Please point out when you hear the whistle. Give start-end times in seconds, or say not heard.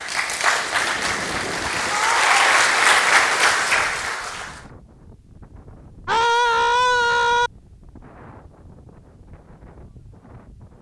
not heard.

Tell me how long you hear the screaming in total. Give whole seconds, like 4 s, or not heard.
2 s.